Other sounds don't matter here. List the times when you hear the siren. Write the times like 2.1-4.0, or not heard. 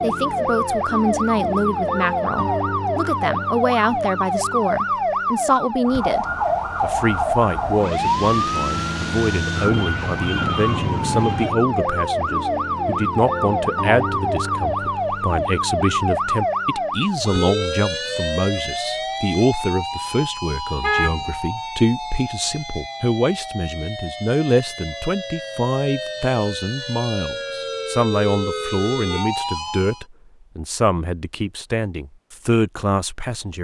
0.0-30.1.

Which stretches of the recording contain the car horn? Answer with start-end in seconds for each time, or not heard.
20.8-21.4.